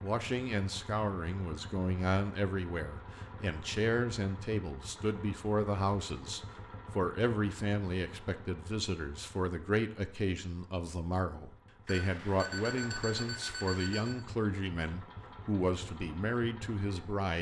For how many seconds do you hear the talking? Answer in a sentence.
You can hear the talking for 17 seconds altogether.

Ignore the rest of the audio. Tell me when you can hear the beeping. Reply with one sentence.
The beeping can be heard from 11.8 to 14.2 s.